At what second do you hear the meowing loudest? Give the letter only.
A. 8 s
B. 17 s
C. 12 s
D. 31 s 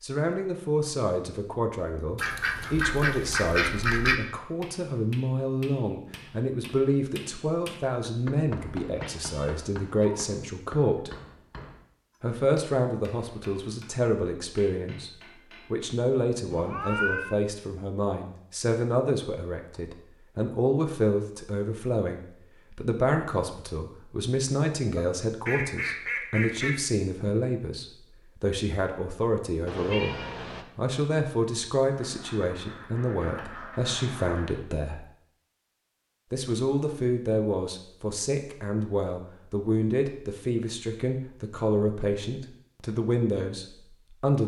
B.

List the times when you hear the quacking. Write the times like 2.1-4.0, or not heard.
2.1-4.2, 24.9-26.8, 31.9-34.6.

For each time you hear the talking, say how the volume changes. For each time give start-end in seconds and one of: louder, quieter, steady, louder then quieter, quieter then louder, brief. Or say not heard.
0.0-11.1 steady
12.2-15.1 brief
15.7-35.0 steady
36.3-44.4 steady.